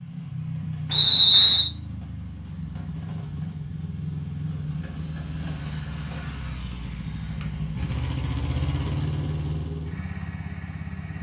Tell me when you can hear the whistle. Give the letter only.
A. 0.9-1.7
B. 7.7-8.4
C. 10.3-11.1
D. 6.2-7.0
A.